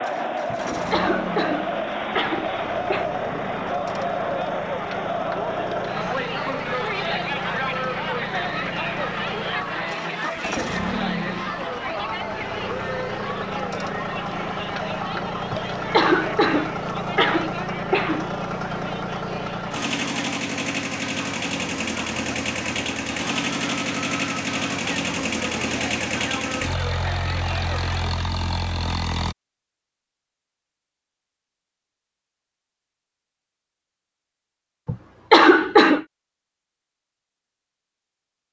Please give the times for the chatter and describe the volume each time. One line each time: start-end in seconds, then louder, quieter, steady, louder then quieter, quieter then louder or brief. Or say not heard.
0.0-28.2 quieter.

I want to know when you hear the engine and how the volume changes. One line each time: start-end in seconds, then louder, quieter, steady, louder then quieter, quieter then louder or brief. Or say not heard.
0.0-29.4 louder.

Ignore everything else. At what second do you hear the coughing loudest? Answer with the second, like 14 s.
35 s.